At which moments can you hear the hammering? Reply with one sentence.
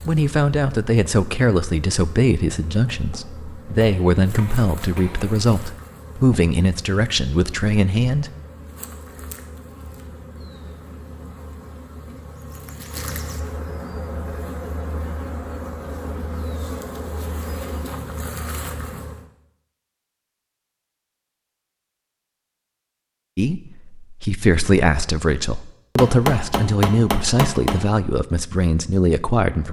The hammering can be heard from 3.7 to 5.4 s and from 25.9 to 27.8 s.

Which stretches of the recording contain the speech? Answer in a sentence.
You can hear the speech from 0.1 to 8.3 s and from 23.4 to 29.6 s.